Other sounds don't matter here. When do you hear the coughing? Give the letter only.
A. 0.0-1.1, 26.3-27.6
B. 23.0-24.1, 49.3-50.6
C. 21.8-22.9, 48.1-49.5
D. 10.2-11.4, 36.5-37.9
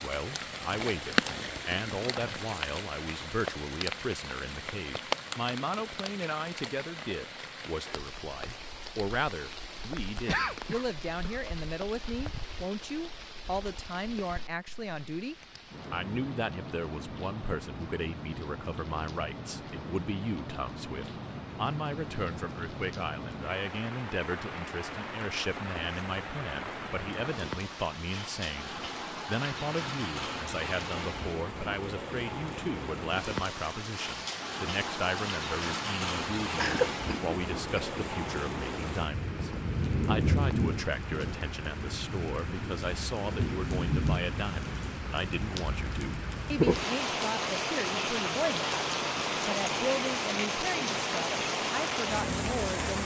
D.